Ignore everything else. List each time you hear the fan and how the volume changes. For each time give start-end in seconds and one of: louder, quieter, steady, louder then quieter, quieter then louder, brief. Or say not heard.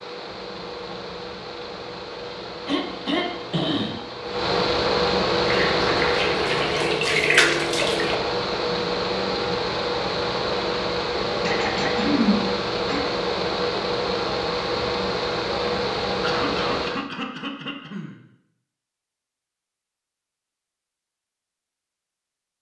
0.0-17.1 louder.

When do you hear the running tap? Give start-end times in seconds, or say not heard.
5.4-8.2.